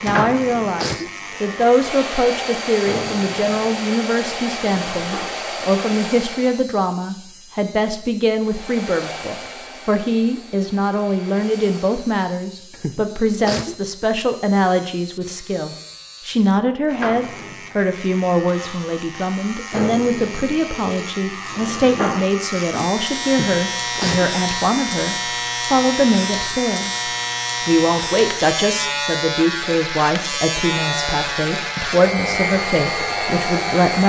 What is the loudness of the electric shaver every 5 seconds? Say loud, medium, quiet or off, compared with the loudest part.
medium, quiet, quiet, medium, loud, loud, loud.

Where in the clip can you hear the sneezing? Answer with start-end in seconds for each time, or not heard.
0.1-1.1, 12.7-13.8, 23.2-24.3.